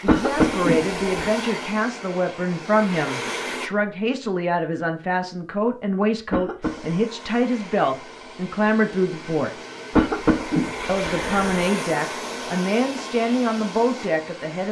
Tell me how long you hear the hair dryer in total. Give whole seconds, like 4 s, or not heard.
12 s.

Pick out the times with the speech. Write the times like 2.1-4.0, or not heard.
0.0-9.5, 10.8-14.6.